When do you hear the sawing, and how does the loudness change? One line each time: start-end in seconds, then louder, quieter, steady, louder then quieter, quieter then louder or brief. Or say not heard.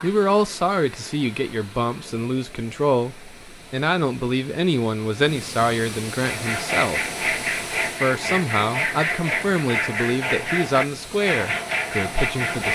6.1-12.6 steady.